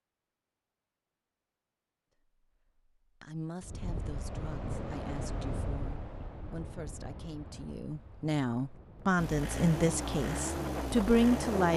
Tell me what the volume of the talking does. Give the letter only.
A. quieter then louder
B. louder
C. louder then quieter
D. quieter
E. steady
B.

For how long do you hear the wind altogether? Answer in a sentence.
You can hear the wind for 8 seconds altogether.